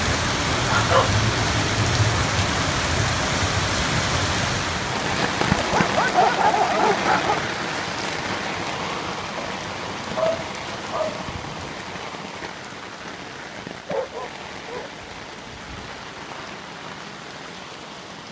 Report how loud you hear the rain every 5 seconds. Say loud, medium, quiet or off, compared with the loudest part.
loud, loud, medium, quiet.